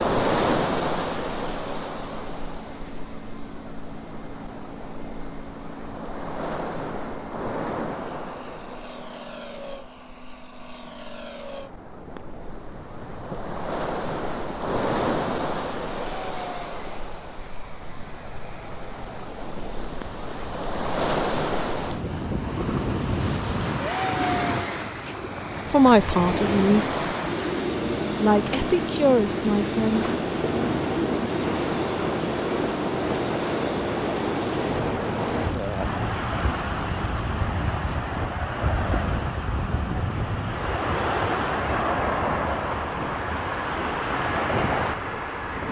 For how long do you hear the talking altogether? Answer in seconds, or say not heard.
4 s.